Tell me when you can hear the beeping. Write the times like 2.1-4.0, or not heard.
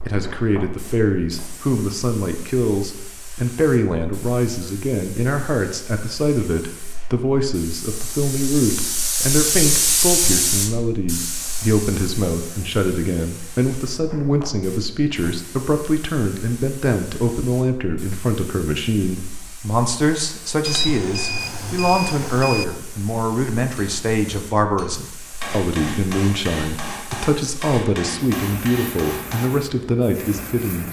20.6-22.6.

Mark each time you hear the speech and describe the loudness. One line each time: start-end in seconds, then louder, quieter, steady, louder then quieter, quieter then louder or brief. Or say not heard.
0.1-30.8 steady.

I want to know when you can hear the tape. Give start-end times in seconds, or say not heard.
not heard.